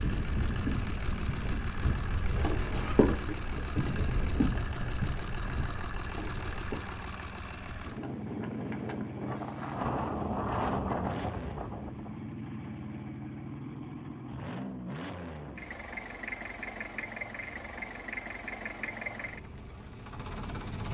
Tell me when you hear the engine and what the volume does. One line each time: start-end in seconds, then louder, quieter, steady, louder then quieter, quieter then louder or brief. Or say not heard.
0.0-20.8 steady.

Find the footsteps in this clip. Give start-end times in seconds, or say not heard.
0.0-6.8.